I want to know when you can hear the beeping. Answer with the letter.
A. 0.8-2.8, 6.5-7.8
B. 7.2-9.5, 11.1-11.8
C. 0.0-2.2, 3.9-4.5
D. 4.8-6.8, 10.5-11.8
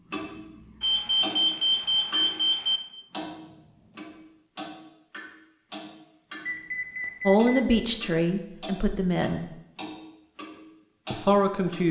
A.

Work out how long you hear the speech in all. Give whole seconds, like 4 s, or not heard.
3 s.